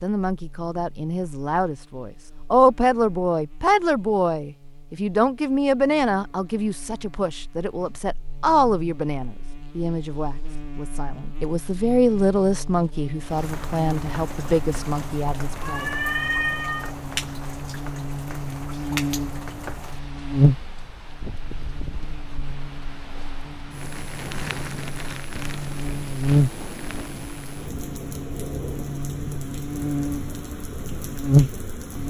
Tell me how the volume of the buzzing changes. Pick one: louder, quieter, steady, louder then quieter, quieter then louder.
louder.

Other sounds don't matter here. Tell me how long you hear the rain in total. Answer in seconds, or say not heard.
19 s.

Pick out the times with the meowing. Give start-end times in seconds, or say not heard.
15.6-16.9.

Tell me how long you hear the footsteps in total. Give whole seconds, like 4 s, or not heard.
not heard.